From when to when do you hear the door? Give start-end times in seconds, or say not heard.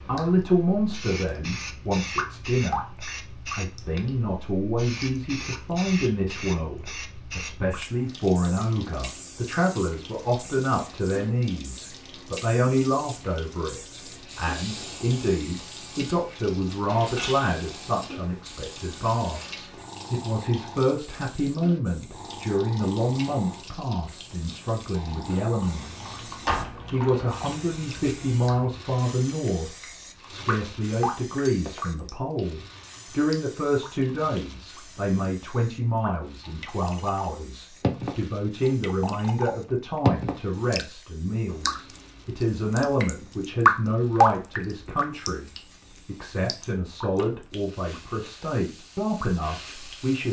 26.4-27.4.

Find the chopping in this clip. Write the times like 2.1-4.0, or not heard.
not heard.